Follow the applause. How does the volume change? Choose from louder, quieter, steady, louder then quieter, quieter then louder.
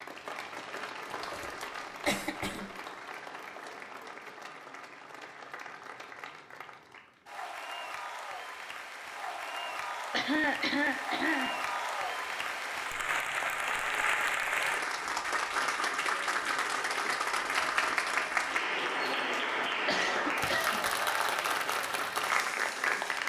louder.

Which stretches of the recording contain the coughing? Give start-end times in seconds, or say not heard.
1.1-2.7, 10.1-11.7, 19.9-20.9.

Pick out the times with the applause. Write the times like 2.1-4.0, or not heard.
0.0-23.2.